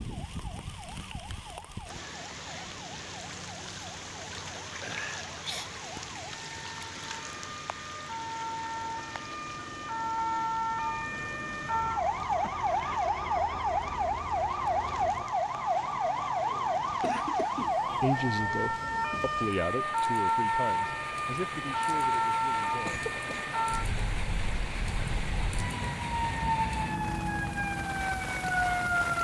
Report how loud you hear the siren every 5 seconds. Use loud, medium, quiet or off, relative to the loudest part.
quiet, medium, loud, loud, loud, loud.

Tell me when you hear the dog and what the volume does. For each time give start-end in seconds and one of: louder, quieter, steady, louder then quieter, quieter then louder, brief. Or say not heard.
not heard.